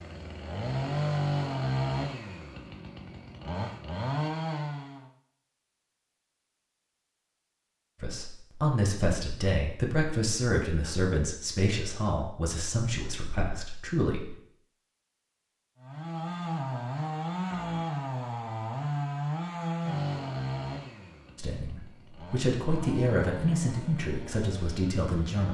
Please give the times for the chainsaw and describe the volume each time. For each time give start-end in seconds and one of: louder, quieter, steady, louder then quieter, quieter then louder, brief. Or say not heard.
0.0-5.1 quieter then louder
15.8-25.5 quieter.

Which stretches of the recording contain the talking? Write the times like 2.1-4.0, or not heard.
8.0-14.3, 21.4-25.5.